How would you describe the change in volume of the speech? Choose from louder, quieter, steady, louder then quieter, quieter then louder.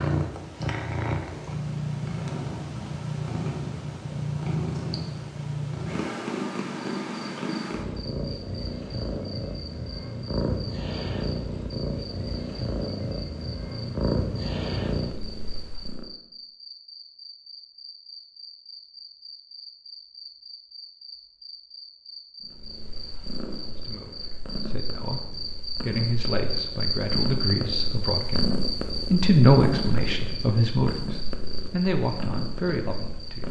louder then quieter.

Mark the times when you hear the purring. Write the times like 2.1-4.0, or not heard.
0.0-16.1, 22.4-33.4.